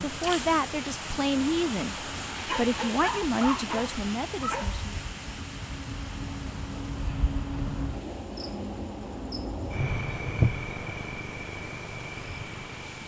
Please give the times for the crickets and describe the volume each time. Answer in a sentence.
You can hear the crickets from 0.0 to 13.0 s, getting louder.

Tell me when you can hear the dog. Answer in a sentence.
The dog can be heard from 2.5 to 5.0 s.